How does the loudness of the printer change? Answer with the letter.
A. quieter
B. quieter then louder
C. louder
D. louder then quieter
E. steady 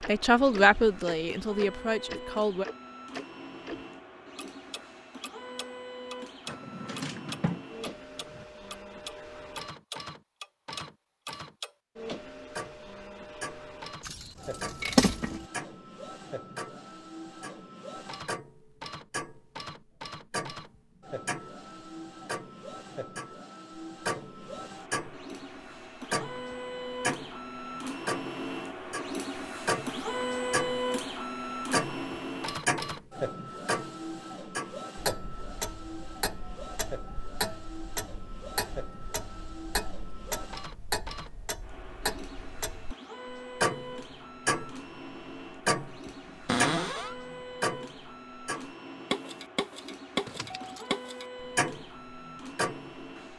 D.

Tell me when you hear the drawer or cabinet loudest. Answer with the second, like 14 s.
47 s.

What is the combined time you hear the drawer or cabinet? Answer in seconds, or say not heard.
3 s.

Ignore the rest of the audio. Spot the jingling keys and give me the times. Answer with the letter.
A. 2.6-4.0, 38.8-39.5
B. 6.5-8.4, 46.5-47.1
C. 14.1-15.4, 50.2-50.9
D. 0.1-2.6
C.